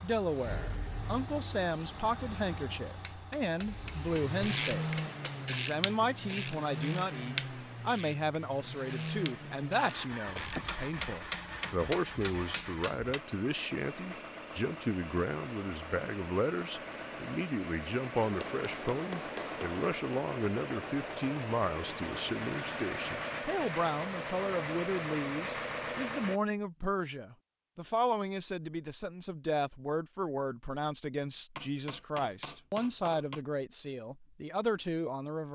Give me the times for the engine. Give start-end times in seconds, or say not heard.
0.0-26.4.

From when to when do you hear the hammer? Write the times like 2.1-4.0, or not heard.
2.9-5.5, 10.2-13.2, 18.2-20.2, 31.6-33.4.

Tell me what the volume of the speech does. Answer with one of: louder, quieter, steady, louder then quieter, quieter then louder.
steady.